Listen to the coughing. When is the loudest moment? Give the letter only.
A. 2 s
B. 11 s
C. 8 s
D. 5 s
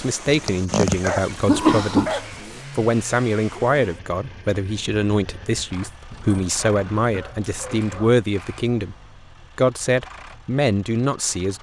A.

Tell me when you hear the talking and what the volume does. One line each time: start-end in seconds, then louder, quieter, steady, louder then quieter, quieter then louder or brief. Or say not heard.
0.0-8.9 steady
9.6-11.5 brief.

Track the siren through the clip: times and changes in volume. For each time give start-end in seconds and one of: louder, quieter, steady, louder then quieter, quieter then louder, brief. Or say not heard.
not heard.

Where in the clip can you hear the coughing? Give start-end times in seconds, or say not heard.
0.2-2.1, 6.8-7.4.